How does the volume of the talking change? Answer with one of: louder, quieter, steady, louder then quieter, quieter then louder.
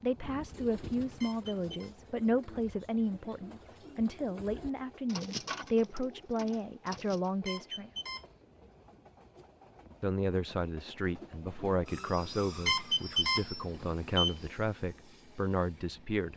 steady.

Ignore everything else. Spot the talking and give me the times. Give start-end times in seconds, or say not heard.
0.0-7.9, 10.0-16.3.